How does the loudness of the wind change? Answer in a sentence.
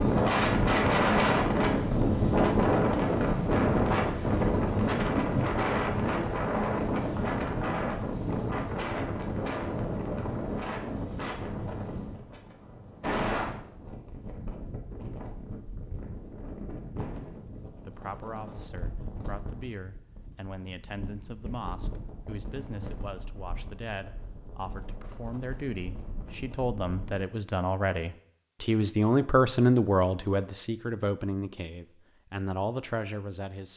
The loudness of the wind goes down.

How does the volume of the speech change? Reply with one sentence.
The loudness of the speech goes up, then down.